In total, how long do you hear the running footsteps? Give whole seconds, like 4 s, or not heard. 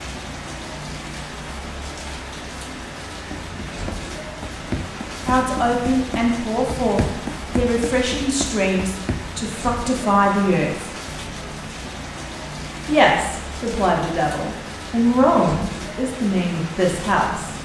6 s.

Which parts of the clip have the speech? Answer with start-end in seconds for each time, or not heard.
5.2-10.9, 12.8-17.6.